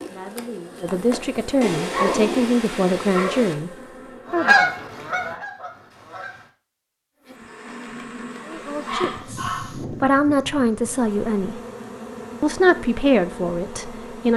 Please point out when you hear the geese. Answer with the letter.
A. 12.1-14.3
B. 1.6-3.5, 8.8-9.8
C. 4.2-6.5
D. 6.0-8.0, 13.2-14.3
C.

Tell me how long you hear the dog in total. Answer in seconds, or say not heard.
3 s.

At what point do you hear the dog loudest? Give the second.
2 s.